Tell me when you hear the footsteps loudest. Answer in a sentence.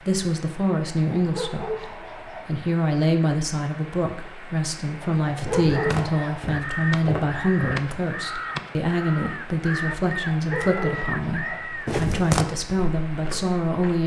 The loudest moment of the footsteps is at 12 seconds.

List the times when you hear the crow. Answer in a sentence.
You can hear the crow from 5.7 to 11.9 s.